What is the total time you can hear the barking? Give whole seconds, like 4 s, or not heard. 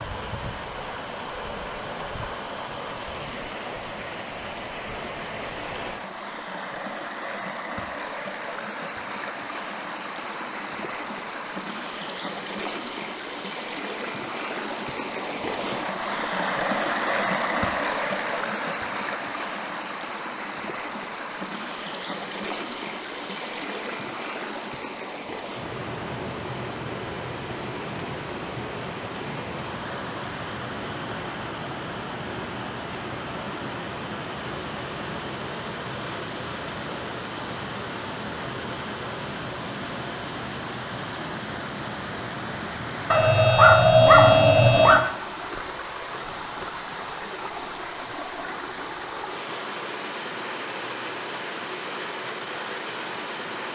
2 s.